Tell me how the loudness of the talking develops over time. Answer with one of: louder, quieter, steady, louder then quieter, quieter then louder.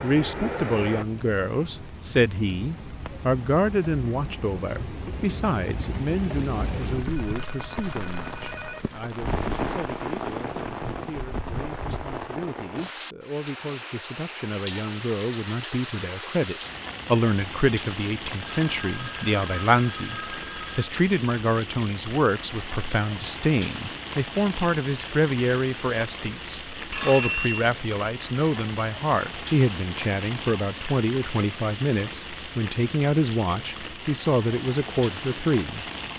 quieter then louder.